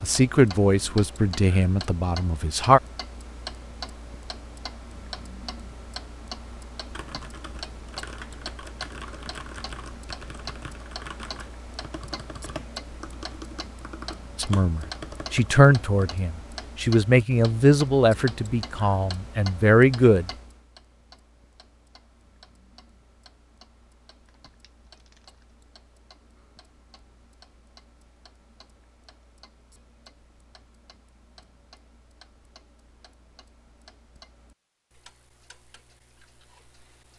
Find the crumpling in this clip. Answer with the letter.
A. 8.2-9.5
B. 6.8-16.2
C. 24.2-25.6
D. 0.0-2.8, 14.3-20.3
C.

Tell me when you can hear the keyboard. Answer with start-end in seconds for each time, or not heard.
6.8-16.2.